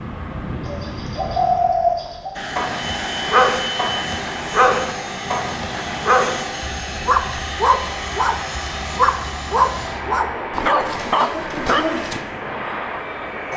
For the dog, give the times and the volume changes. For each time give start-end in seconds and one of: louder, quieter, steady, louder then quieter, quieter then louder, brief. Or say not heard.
2.5-12.2 steady.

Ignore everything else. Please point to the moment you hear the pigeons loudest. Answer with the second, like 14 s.
2 s.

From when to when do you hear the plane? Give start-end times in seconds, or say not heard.
0.0-13.5.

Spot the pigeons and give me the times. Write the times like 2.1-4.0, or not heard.
0.7-2.4, 10.6-12.1.